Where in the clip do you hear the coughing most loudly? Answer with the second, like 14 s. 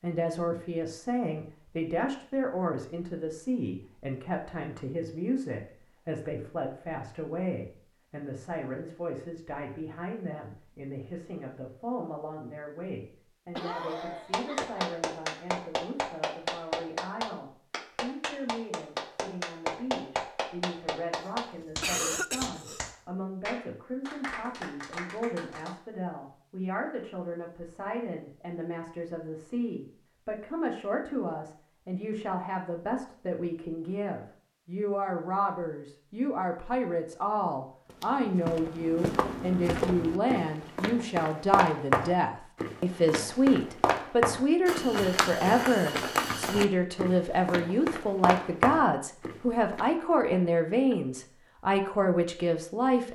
22 s.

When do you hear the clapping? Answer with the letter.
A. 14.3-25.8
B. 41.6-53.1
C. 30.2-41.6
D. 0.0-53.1
A.